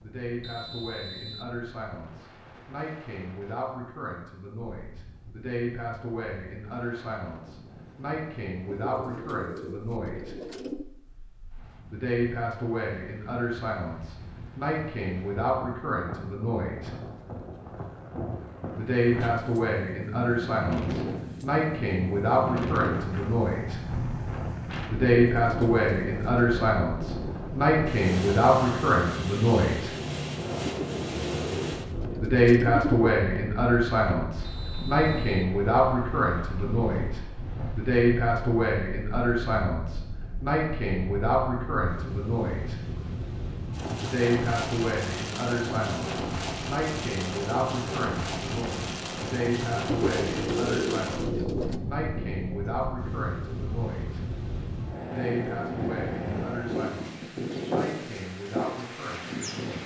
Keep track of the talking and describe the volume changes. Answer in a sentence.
The volume of the talking goes up, then down.